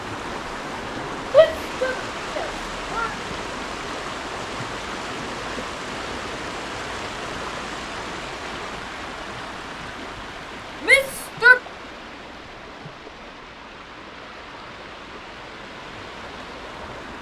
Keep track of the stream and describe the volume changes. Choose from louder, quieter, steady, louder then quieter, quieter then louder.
quieter.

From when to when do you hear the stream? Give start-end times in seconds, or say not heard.
0.0-17.1.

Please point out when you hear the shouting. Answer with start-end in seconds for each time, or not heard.
1.3-3.1, 10.8-11.6.